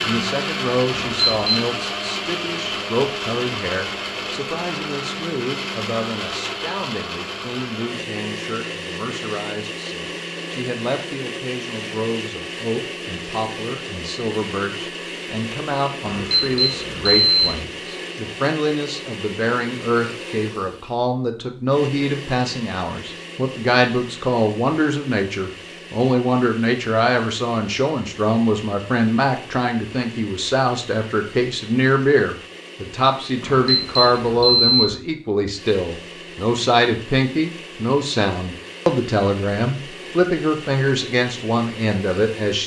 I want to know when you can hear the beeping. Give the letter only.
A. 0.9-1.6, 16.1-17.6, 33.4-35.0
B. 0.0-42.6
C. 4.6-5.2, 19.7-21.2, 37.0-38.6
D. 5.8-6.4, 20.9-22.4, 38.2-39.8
A.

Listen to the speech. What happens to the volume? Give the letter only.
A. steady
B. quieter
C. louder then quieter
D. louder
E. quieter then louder
D.